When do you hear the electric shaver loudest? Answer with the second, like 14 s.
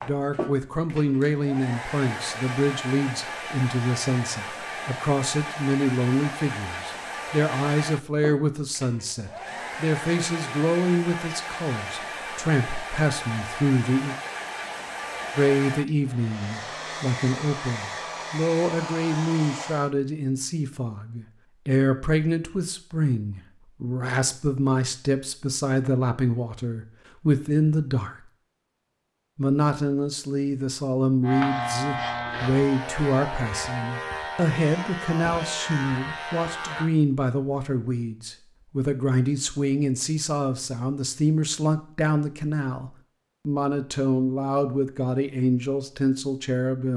32 s.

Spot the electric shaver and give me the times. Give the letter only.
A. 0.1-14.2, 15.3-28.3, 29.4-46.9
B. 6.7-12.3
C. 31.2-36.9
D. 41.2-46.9
C.